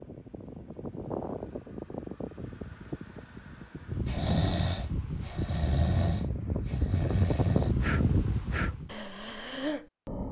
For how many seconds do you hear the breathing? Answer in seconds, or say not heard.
6 s.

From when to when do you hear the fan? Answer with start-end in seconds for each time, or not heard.
0.0-8.9.